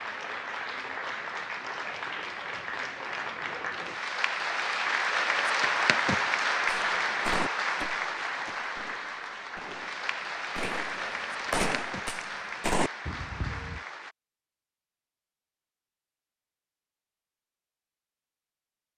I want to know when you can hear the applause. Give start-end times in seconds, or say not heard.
0.0-14.2.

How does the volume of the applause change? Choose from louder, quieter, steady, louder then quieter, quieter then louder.
louder then quieter.